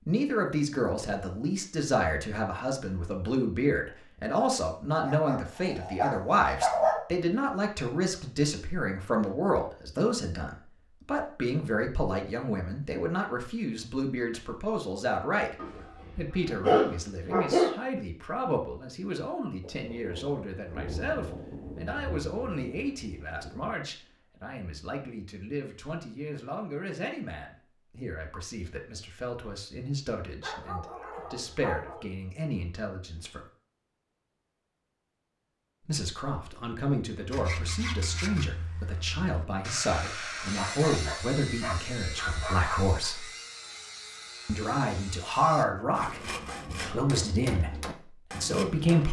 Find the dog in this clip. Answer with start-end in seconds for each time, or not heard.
5.0-7.0, 15.6-17.8, 30.4-32.1, 40.4-43.1.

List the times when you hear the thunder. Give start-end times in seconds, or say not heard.
19.6-23.8.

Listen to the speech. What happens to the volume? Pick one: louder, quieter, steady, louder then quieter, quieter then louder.
quieter then louder.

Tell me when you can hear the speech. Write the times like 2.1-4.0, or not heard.
0.1-15.6, 16.1-33.5, 35.9-43.3, 44.5-49.0.